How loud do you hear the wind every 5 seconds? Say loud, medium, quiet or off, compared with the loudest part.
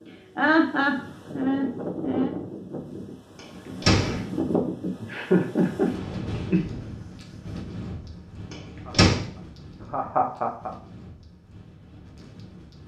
loud, medium, quiet.